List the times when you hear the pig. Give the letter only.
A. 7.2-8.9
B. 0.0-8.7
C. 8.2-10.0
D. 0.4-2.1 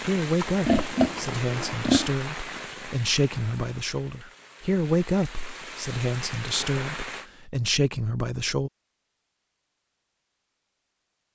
D.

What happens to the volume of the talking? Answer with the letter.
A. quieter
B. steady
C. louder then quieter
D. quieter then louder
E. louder
B.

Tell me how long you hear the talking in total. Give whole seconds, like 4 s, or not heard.
9 s.